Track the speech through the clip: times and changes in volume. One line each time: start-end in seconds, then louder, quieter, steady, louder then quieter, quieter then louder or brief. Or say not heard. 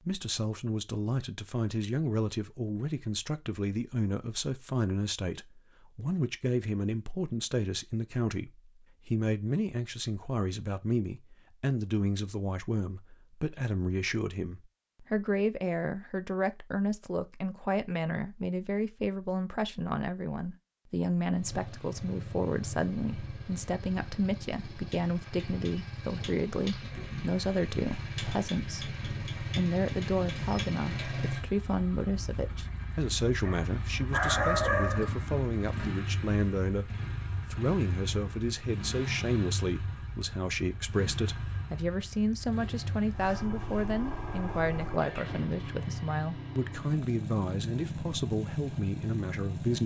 0.1-36.9 steady
37.5-49.8 steady.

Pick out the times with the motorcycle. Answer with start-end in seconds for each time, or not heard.
21.3-49.8.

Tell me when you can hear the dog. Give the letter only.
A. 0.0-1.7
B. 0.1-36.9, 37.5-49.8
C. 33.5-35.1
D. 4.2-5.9
C.